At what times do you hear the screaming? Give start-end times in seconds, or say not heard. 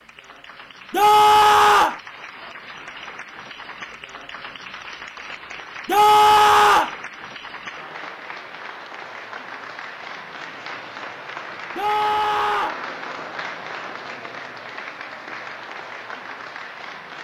0.9-2.0, 5.8-7.0, 11.8-12.8.